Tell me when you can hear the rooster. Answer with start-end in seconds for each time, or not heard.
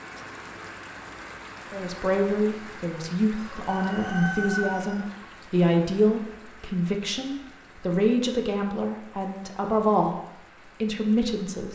3.4-5.0.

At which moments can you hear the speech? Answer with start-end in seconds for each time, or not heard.
1.7-10.2, 10.8-11.7.